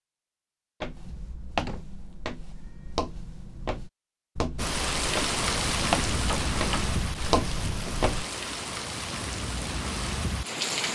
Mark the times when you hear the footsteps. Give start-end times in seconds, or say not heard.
0.8-8.2.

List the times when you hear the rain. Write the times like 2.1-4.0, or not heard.
4.5-10.9.